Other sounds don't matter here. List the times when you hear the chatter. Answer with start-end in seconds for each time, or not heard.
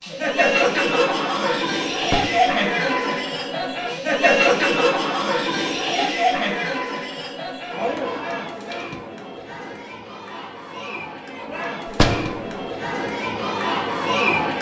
0.0-14.5.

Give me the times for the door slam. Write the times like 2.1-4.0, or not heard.
2.0-2.5, 11.9-12.6.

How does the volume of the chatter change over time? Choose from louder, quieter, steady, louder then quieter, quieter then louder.
quieter then louder.